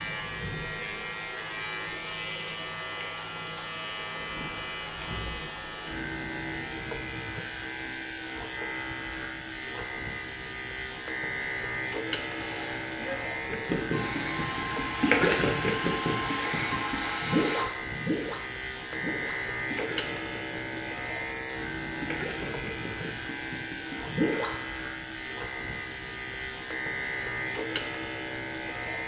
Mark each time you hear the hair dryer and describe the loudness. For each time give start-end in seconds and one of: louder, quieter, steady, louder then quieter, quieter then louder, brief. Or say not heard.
12.3-17.6 louder.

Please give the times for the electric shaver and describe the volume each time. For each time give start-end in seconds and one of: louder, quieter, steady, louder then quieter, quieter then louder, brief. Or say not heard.
0.0-29.0 steady.